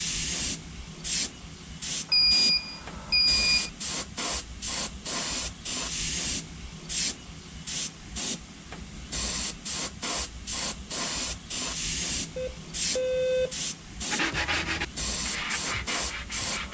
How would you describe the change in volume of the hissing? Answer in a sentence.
The loudness of the hissing stays about the same.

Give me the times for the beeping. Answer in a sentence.
The beeping can be heard from 2.1 to 3.7 s and from 12.3 to 13.6 s.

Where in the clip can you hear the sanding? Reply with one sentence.
The sanding can be heard from 14.1 to 16.6 s.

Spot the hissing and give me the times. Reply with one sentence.
The hissing can be heard from 0.0 to 16.6 s.